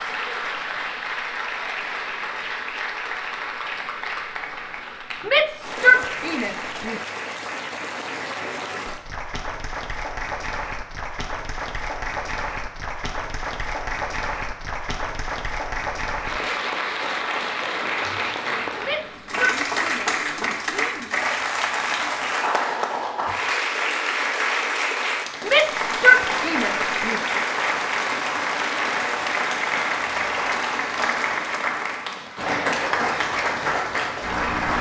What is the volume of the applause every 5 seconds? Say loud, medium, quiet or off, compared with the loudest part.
medium, medium, medium, loud, loud, loud, loud.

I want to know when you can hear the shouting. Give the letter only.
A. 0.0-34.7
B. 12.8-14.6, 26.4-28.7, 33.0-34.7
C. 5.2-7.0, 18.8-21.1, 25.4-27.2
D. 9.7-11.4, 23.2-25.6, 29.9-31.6
C.